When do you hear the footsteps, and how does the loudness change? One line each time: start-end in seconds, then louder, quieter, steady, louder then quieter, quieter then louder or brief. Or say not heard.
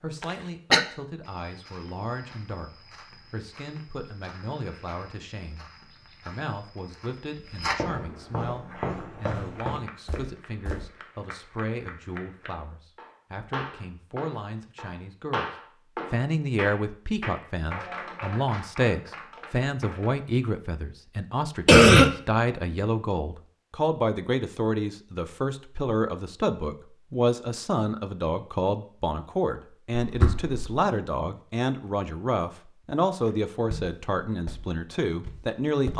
1.2-10.8 louder
33.2-35.9 brief.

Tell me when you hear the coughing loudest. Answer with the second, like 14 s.
22 s.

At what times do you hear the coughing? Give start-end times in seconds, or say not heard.
0.2-0.8, 21.6-22.1, 29.9-30.8.